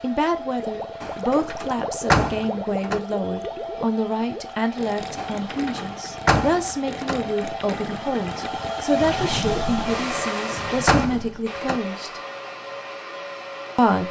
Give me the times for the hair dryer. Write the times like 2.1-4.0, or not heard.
0.0-14.0.